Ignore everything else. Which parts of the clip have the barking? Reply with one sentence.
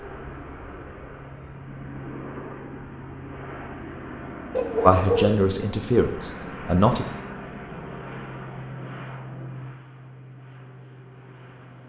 The barking can be heard from 4.5 to 5.4 s.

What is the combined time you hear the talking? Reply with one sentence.
The talking can be heard for 2 seconds in total.